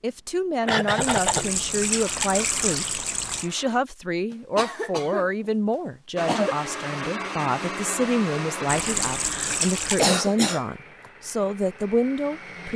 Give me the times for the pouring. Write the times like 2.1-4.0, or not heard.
1.0-3.5, 8.7-10.1.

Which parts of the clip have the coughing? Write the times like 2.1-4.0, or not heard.
0.7-1.5, 4.3-6.5, 9.2-10.7.